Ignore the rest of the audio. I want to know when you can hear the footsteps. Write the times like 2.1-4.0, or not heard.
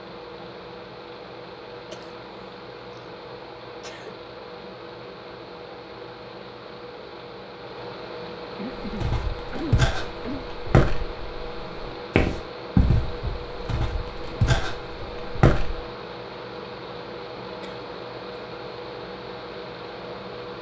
8.8-15.8.